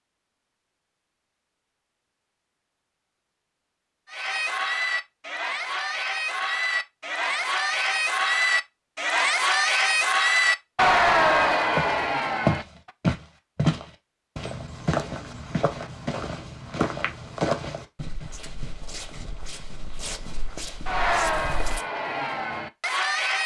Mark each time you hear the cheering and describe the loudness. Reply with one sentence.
The cheering can be heard from 4.0 to 12.9 s, getting louder; and briefly from 20.9 to 23.4 s.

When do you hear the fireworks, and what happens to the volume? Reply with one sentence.
The fireworks can't be heard in this clip.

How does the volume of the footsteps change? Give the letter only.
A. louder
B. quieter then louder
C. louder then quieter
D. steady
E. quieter
E.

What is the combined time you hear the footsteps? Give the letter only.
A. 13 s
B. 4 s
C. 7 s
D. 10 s
D.